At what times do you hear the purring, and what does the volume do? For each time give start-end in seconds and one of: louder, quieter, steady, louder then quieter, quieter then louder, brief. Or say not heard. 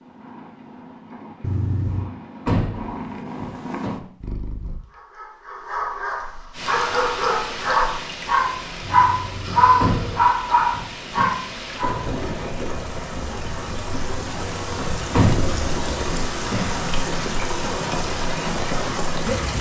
0.0-4.8 louder.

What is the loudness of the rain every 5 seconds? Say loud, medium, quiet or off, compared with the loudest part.
off, medium, medium, loud.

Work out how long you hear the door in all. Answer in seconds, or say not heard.
5 s.